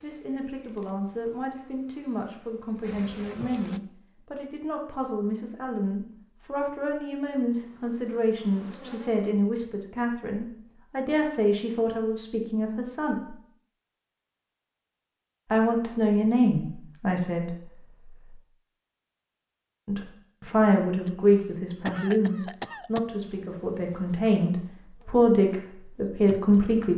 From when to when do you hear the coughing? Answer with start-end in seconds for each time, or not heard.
21.1-23.0.